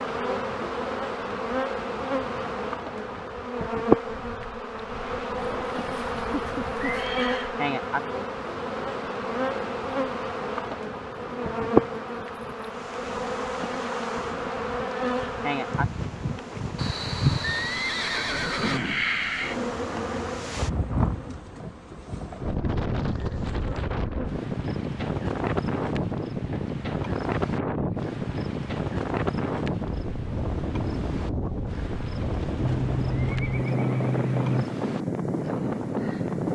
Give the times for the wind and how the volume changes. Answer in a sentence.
The wind can be heard from 0.0 to 36.5 s, getting louder.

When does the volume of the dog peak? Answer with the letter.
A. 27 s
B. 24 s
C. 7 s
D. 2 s
C.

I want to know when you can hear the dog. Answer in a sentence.
You can hear the dog from 5.5 to 7.1 s.